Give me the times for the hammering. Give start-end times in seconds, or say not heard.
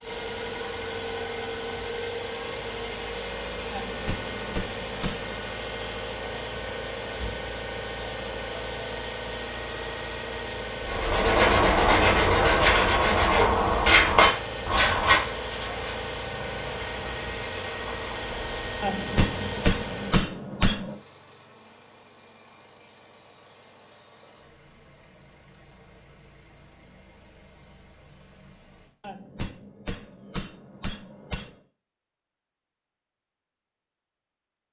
3.7-5.3, 18.8-20.9, 29.0-31.6.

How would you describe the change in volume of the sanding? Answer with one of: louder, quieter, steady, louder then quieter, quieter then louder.
quieter.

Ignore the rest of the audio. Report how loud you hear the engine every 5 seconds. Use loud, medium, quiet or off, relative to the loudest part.
loud, loud, loud, loud, quiet, quiet, off.